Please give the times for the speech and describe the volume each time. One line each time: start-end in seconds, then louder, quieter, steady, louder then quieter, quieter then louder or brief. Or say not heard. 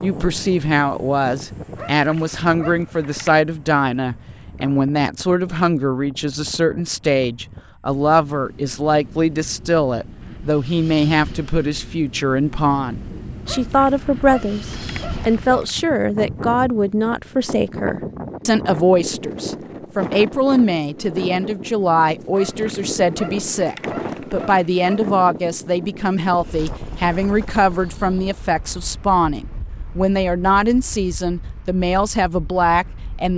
0.0-33.3 steady.